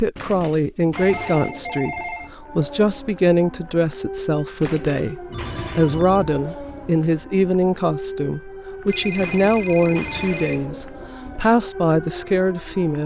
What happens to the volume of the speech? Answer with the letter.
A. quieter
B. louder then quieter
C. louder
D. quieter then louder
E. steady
E.